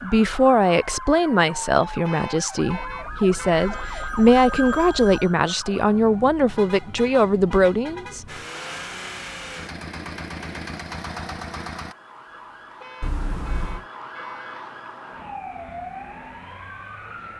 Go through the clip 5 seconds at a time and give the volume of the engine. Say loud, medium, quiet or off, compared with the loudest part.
off, loud, loud, off.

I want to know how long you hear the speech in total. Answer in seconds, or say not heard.
8 s.